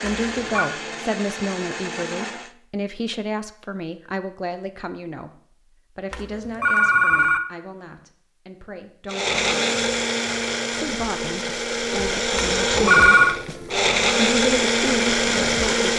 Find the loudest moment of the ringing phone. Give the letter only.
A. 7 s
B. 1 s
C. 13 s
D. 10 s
C.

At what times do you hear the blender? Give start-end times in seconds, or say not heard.
0.0-2.5, 9.1-15.9.